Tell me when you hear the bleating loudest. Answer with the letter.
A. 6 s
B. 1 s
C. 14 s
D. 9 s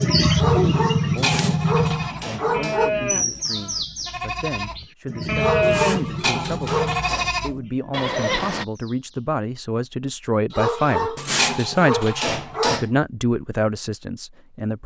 A.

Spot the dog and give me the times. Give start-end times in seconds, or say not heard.
0.3-2.9, 5.3-7.2, 10.5-12.8.